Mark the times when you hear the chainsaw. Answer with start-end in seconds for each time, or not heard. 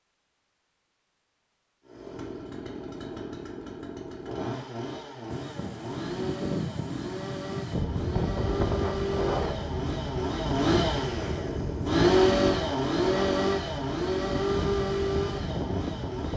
1.9-16.3.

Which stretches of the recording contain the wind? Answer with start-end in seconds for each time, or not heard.
5.2-16.3.